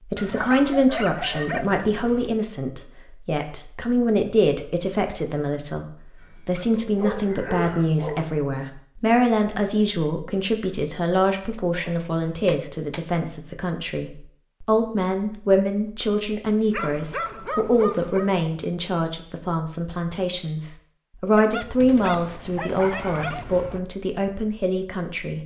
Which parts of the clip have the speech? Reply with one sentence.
The speech can be heard from 0.1 to 25.4 s.